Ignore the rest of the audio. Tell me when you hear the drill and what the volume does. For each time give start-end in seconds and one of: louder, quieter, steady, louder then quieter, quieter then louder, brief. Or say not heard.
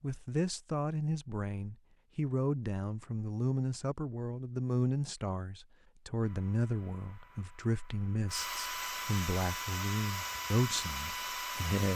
6.2-11.9 louder.